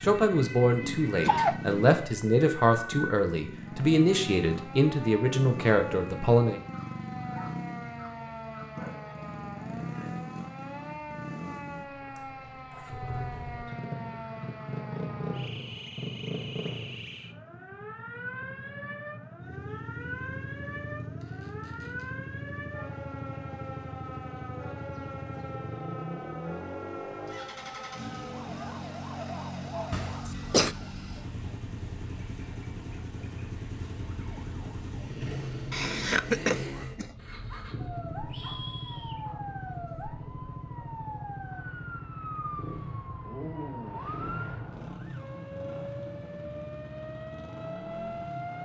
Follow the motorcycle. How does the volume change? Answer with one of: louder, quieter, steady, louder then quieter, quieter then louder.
steady.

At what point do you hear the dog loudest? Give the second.
39 s.